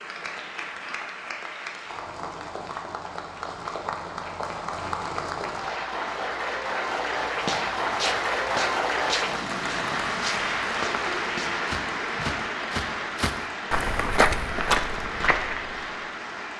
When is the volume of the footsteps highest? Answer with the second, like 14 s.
14 s.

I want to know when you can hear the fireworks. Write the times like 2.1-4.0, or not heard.
not heard.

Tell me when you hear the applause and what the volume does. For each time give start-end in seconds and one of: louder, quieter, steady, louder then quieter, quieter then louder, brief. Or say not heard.
0.0-16.5 louder then quieter.